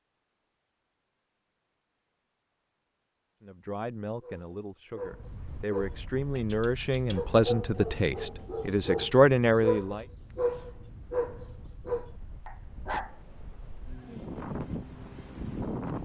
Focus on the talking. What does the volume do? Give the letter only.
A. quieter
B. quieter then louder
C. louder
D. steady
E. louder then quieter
C.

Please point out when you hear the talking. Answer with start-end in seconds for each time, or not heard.
3.4-10.1.